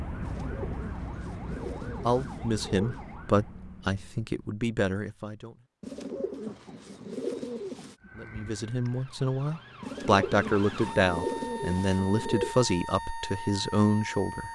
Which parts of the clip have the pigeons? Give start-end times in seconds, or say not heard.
0.2-3.0, 5.8-8.0, 9.8-12.6.